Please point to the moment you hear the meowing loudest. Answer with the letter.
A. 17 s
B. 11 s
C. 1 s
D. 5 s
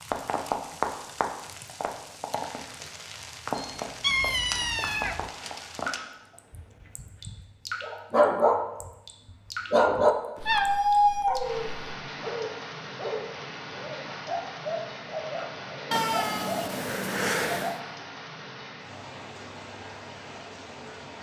B.